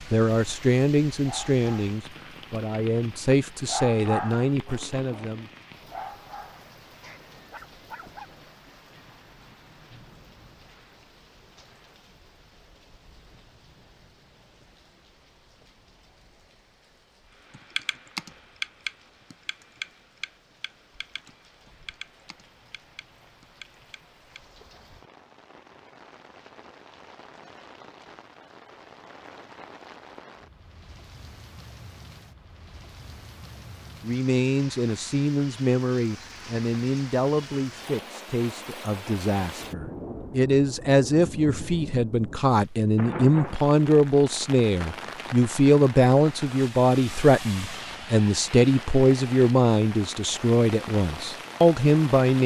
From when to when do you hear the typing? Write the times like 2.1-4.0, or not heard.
17.5-24.4.